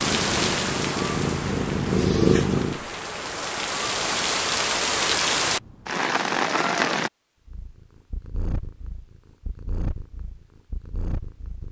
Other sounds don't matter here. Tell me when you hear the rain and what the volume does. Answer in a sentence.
The rain can be heard from 0.0 to 7.1 s, getting quieter then louder.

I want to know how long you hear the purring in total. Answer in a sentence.
The purring can be heard for 7 seconds in total.